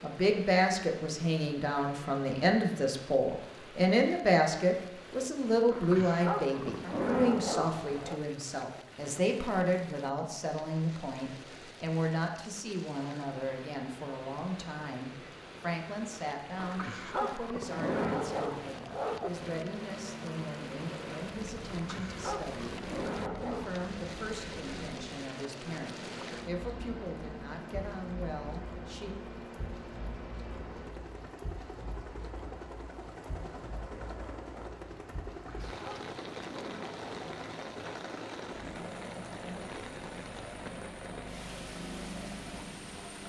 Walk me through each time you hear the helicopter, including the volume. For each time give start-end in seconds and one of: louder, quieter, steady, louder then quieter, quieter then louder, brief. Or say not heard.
19.1-43.2 steady.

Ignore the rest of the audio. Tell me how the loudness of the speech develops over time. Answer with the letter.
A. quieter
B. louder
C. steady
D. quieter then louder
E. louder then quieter
A.